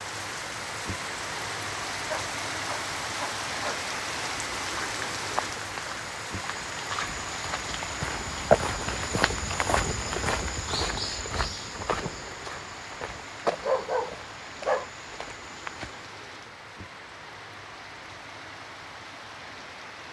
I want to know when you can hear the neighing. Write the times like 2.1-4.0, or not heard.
not heard.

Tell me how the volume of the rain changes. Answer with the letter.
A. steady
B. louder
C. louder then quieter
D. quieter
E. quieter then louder
D.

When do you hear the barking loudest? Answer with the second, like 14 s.
14 s.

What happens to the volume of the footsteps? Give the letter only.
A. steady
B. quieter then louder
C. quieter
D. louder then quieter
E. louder
D.